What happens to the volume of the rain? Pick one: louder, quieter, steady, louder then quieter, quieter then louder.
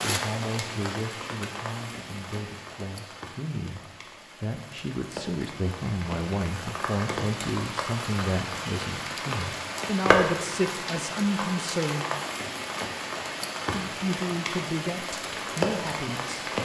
louder.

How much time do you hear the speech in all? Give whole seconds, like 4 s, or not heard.
14 s.